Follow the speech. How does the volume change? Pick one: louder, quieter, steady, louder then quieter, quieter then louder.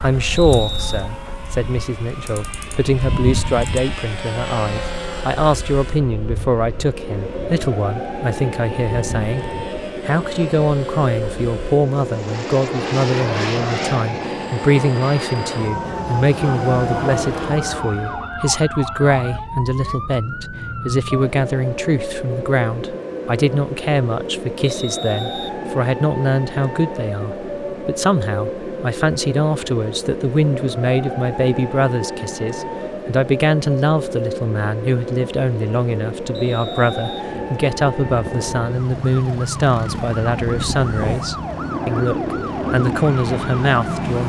steady.